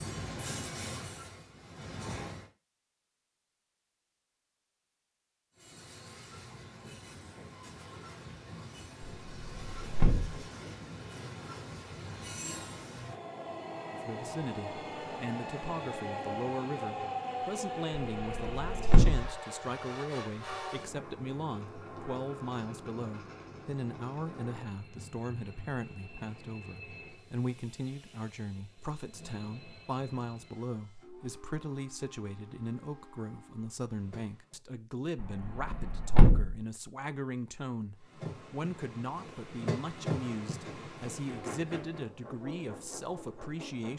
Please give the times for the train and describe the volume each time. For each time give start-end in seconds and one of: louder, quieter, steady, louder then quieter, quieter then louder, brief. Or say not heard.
0.0-2.5 brief
5.5-34.6 louder then quieter
38.0-43.9 louder then quieter.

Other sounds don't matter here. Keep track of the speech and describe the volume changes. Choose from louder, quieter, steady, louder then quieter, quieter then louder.
steady.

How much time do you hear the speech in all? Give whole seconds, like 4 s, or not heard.
30 s.